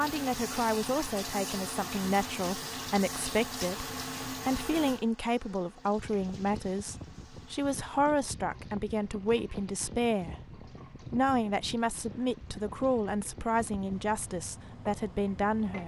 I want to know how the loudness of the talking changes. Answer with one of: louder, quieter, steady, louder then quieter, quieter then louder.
steady.